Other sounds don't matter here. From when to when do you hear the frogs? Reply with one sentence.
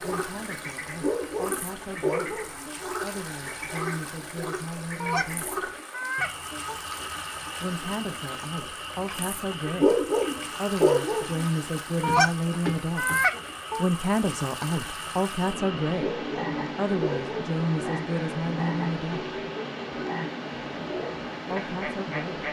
The frogs can be heard from 0.0 to 22.4 s.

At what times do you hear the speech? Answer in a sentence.
You can hear the speech from 0.0 to 5.7 s, from 7.6 to 13.1 s, from 13.8 to 19.2 s and from 21.5 to 22.4 s.